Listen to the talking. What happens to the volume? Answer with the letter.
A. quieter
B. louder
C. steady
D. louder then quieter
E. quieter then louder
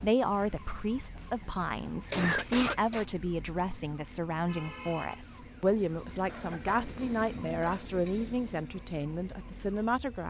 C.